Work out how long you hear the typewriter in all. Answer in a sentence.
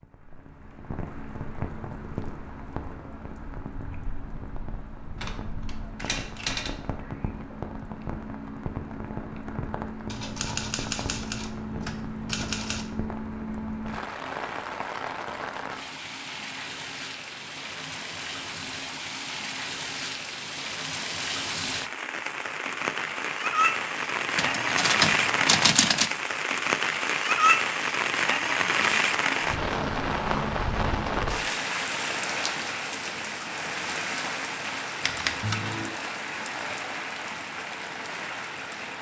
The typewriter can be heard for 7 seconds in total.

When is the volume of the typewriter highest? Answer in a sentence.
The loudest moment of the typewriter is at 26 seconds.